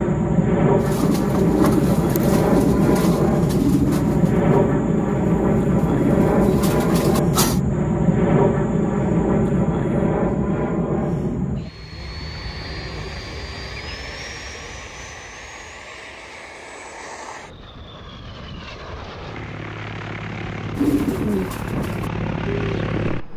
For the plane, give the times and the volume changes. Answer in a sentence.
The plane can be heard from 0.0 to 23.3 s, getting quieter then louder.